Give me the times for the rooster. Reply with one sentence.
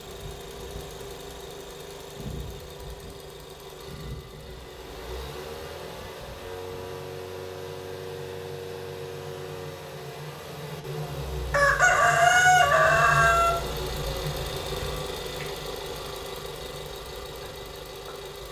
You can hear the rooster from 11.5 to 13.5 s.